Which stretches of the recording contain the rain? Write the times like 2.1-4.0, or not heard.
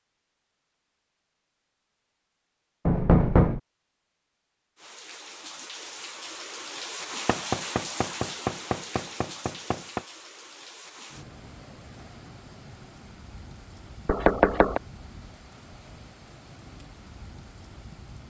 4.8-18.2.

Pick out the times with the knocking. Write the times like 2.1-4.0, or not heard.
2.9-3.6, 7.2-10.0, 14.1-14.8.